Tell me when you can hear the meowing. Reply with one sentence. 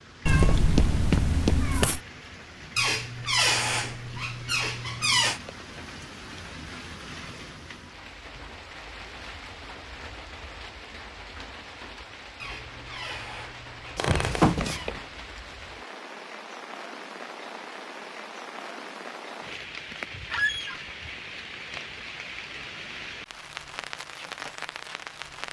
The meowing can be heard from 0.2 to 2.0 s and from 13.9 to 15.0 s.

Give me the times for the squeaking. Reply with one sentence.
The squeaking can be heard from 2.8 to 5.4 s, from 12.3 to 14.9 s and from 20.3 to 20.8 s.